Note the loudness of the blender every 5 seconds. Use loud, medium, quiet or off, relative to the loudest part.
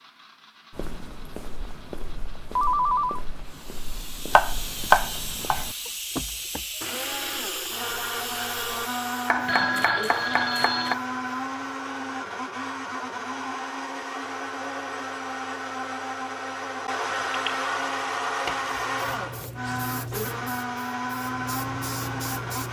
quiet, loud, loud, loud, loud.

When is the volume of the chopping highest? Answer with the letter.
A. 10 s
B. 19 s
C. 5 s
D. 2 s
C.